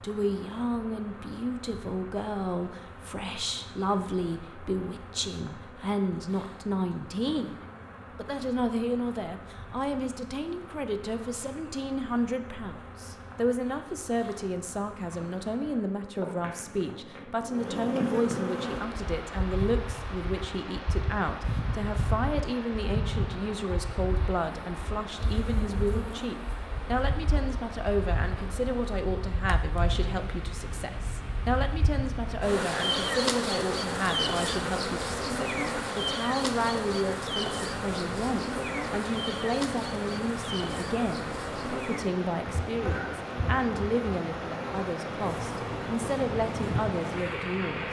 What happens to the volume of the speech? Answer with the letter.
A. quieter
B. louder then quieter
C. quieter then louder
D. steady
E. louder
D.